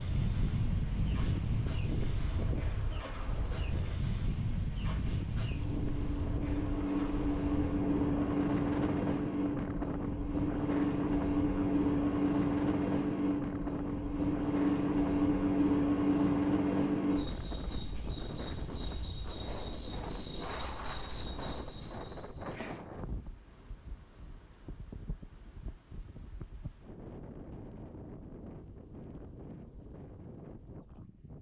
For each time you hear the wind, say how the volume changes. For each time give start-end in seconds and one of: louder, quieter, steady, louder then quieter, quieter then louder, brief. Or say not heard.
0.0-31.3 quieter.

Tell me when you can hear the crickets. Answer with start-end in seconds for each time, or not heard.
0.0-22.9.